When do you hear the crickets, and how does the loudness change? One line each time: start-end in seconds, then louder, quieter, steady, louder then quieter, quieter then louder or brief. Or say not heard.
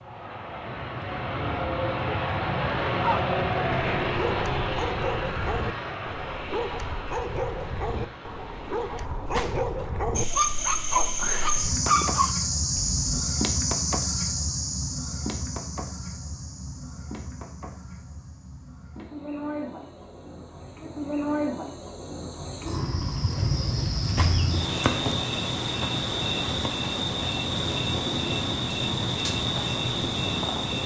10.2-30.8 quieter then louder.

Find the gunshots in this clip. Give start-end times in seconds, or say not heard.
9.3-9.8, 24.1-24.6.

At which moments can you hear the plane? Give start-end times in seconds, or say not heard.
0.0-9.1.